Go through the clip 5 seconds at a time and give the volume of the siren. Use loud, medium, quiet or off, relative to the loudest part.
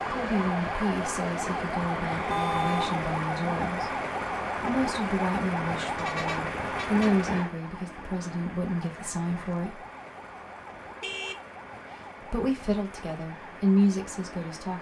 loud, loud, quiet.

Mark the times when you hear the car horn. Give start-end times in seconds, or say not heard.
2.3-3.0, 6.0-7.2, 11.0-12.3.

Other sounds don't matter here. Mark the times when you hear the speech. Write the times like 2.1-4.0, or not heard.
0.1-3.9, 4.5-9.8, 12.2-14.7.